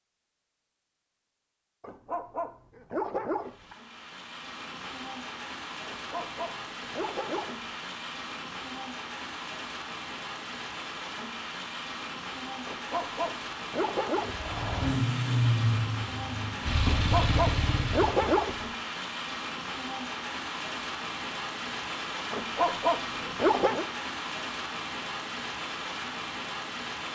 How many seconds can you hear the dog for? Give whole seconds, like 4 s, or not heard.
9 s.